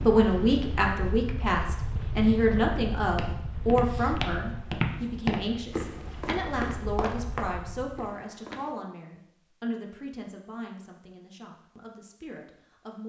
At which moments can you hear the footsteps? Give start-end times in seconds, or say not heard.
3.0-8.7.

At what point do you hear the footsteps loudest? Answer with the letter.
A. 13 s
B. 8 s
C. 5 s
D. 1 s
C.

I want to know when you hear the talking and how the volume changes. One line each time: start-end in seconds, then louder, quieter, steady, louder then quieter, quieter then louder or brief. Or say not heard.
0.0-13.0 quieter.